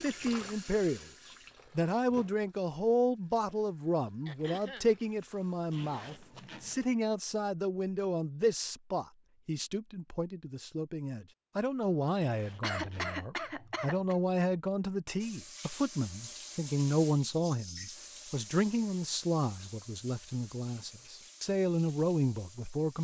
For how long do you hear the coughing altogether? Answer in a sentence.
You can hear the coughing for 2 seconds altogether.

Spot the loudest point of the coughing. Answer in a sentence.
The loudest moment of the coughing is at 13 seconds.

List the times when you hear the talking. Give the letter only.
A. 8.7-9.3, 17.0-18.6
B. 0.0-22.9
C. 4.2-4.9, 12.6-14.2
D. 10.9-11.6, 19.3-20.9
B.